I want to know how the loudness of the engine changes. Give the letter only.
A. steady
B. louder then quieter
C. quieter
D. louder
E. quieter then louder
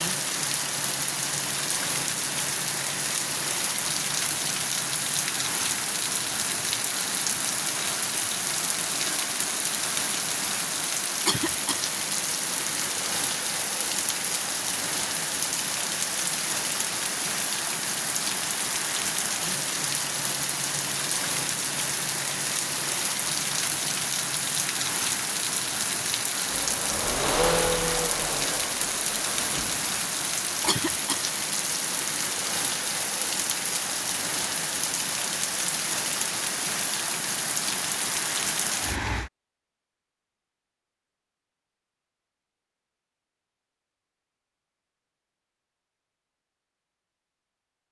C.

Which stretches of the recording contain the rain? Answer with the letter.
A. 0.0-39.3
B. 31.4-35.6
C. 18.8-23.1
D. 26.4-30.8
A.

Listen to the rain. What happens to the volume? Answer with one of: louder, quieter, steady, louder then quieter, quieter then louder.
steady.